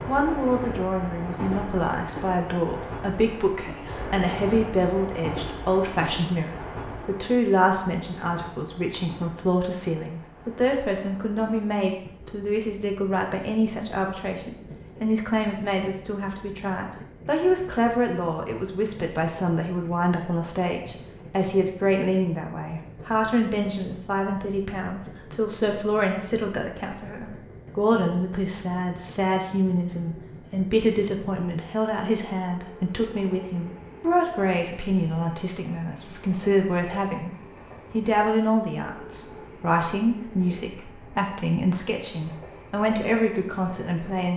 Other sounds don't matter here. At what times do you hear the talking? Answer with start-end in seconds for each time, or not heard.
0.1-37.3, 37.9-44.3.